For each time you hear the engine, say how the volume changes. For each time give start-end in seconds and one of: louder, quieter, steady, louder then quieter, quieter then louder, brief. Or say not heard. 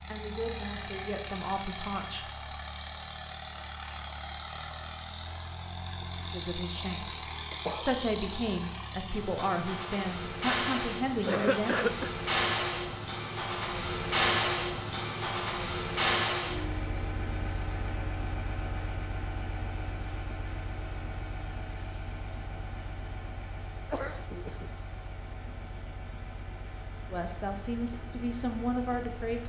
0.0-29.4 louder then quieter.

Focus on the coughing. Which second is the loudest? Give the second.
12 s.